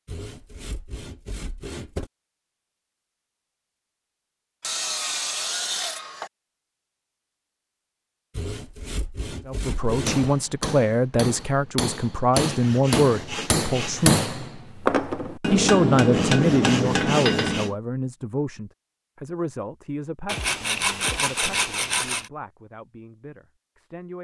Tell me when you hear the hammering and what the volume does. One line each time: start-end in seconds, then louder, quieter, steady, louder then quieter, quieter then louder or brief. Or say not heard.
9.7-17.8 louder.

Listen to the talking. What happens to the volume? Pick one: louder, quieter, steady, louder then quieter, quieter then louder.
quieter.